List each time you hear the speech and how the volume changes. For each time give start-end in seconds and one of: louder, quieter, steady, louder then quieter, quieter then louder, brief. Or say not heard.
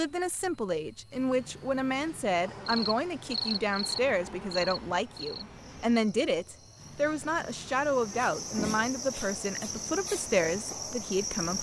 0.0-11.5 steady.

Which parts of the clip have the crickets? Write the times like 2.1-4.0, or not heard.
2.4-11.5.